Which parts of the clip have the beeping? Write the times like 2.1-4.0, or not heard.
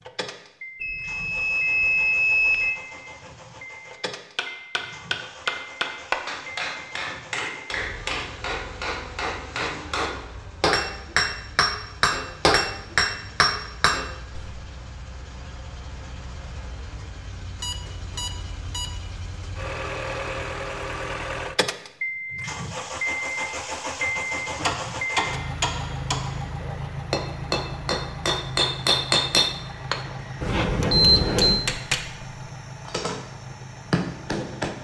0.8-2.8, 17.6-18.9, 30.4-31.6.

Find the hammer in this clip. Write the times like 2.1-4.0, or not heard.
4.3-14.5, 24.6-33.2, 33.9-34.7.